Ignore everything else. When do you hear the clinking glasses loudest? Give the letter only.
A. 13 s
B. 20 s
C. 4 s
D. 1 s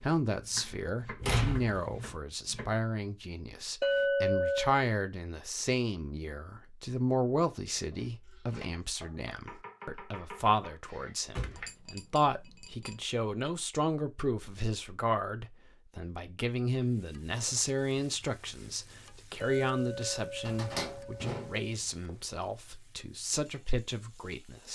C.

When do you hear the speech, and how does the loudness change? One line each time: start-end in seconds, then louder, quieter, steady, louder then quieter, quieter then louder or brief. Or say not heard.
0.0-24.7 steady.